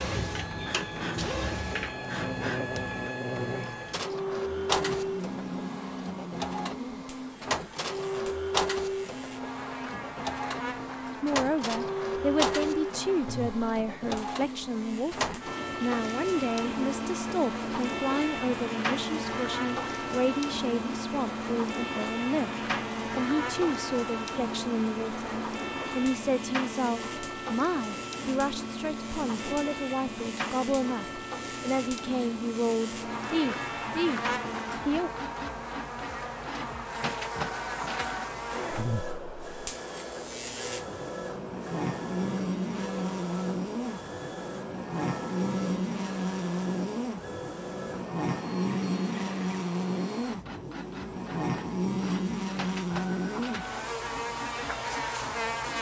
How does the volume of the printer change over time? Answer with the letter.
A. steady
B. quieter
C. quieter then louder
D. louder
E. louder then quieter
B.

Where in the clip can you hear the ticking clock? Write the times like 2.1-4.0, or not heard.
not heard.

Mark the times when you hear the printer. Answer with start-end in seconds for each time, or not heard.
0.0-55.7.